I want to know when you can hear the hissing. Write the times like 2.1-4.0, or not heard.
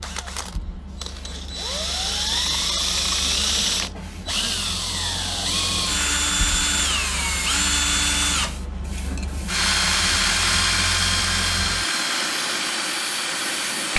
0.0-13.9.